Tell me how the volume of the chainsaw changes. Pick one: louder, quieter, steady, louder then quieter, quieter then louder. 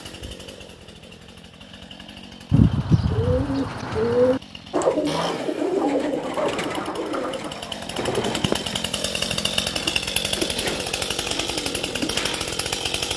louder.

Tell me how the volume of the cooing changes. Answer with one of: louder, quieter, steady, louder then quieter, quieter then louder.
quieter.